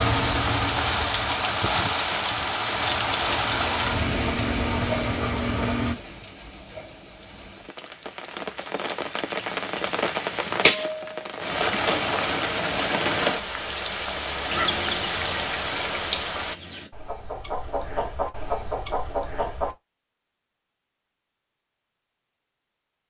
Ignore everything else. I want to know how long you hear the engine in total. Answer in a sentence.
You can hear the engine for 6 seconds altogether.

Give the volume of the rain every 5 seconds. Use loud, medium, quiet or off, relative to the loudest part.
loud, medium, loud, loud, off.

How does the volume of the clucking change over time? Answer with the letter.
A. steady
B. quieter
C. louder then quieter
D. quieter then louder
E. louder
D.